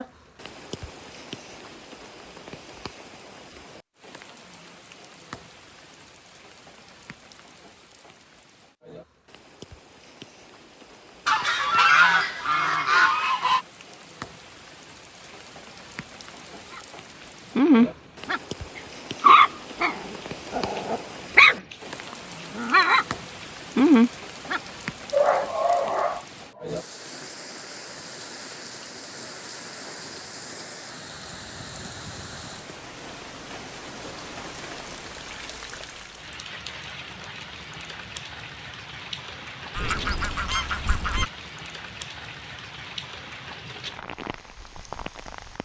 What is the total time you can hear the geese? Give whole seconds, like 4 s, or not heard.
4 s.